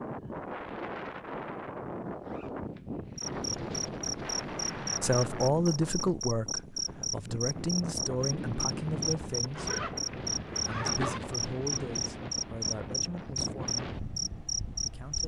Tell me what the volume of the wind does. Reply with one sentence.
The volume of the wind stays about the same.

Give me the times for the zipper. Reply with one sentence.
The zipper can be heard from 2.0 to 3.4 s and from 9.6 to 11.2 s.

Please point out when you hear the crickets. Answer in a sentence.
You can hear the crickets from 3.1 to 15.2 s.